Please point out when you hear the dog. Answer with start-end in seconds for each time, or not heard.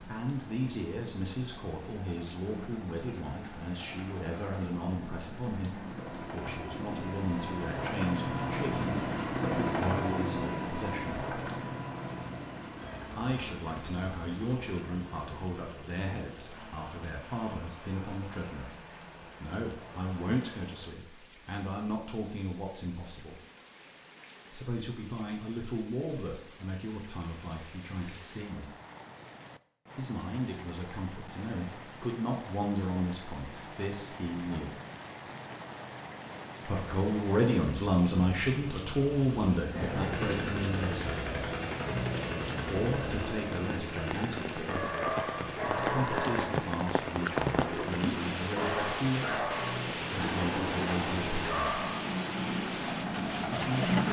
44.6-52.0.